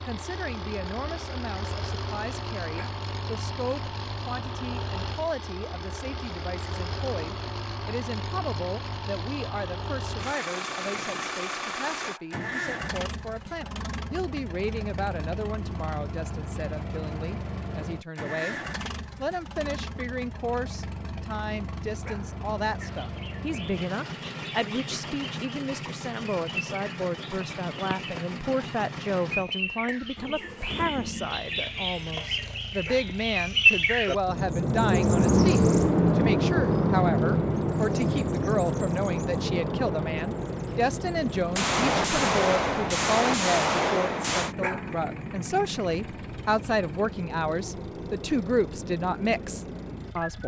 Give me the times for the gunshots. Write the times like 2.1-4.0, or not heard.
41.5-44.5.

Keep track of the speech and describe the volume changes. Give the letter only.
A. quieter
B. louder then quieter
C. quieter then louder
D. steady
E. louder
E.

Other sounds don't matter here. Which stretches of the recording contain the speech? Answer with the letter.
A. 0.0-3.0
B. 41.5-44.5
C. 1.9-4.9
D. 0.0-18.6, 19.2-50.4
D.